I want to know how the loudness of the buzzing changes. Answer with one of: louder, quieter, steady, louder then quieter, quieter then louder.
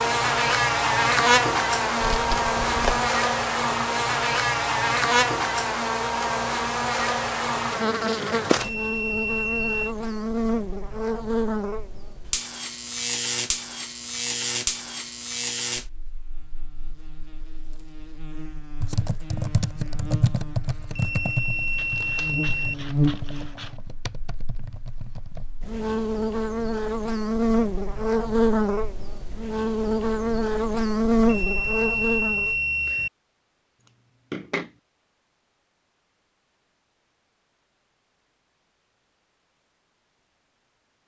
quieter then louder.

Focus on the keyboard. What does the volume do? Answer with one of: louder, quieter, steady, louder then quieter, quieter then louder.
quieter.